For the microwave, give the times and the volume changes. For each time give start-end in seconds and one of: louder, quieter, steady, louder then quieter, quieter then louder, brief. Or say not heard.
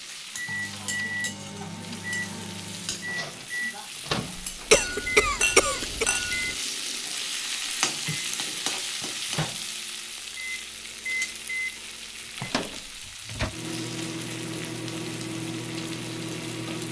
0.2-16.8 quieter then louder.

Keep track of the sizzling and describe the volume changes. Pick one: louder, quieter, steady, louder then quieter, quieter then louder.
louder then quieter.